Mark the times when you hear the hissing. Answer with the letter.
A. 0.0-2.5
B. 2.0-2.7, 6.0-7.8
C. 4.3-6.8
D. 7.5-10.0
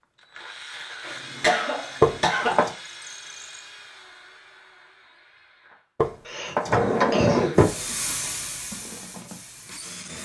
D.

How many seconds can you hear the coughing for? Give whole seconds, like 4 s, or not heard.
3 s.